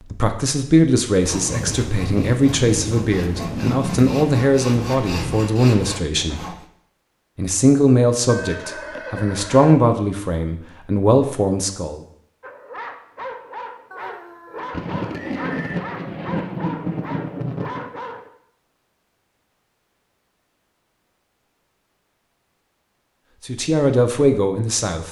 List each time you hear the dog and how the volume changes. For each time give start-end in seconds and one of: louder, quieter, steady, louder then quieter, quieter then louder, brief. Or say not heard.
12.4-18.3 steady.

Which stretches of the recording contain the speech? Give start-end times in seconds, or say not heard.
0.1-6.4, 7.3-12.0, 23.4-25.0.